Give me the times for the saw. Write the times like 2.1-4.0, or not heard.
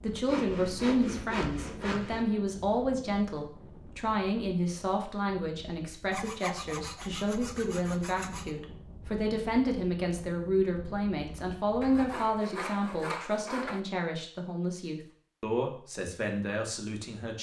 0.2-2.2, 6.1-8.5, 11.8-13.8.